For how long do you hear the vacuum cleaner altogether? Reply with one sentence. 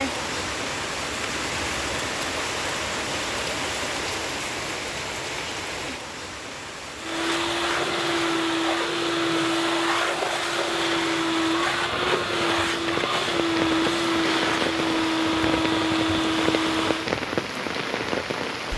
The vacuum cleaner can be heard for 10 seconds in total.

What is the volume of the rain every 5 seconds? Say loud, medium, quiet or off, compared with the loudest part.
loud, medium, loud, loud.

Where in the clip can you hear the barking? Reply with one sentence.
The barking can't be heard in this clip.